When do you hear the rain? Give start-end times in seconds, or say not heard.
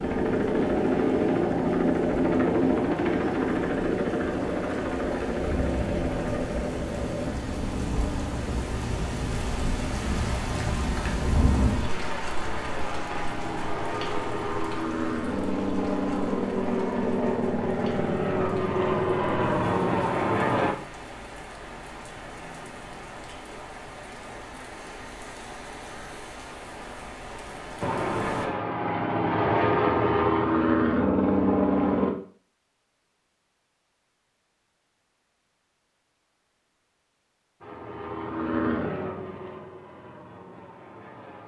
0.0-28.5.